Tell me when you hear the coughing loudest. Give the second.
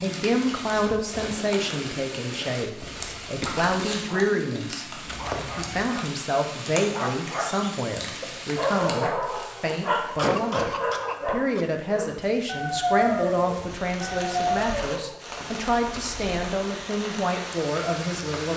10 s.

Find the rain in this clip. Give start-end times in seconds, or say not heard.
0.0-18.5.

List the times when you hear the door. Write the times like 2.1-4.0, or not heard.
not heard.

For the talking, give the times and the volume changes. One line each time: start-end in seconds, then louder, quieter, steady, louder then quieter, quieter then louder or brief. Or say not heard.
0.0-18.5 steady.